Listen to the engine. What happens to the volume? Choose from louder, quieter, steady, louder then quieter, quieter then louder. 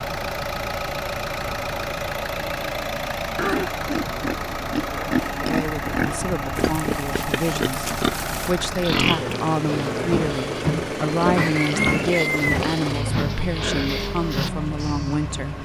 steady.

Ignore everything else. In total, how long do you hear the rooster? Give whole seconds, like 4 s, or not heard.
2 s.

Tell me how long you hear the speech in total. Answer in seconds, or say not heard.
10 s.